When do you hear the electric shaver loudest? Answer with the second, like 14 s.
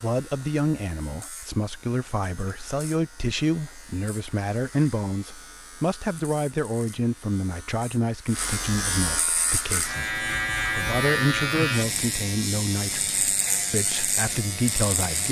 11 s.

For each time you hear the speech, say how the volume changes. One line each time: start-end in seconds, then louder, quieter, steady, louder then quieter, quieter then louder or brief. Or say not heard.
0.0-15.2 steady.